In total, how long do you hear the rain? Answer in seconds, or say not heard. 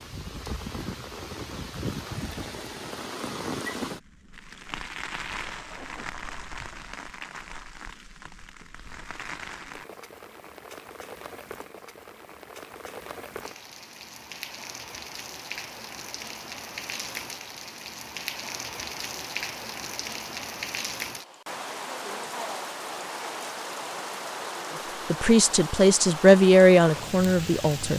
28 s.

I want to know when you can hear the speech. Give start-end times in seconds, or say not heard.
25.1-27.9.